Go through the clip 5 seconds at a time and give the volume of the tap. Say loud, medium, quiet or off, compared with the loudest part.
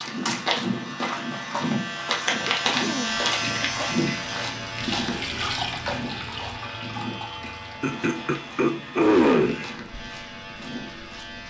loud, loud, quiet.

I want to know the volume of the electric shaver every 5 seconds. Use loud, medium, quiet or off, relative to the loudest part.
loud, medium, medium.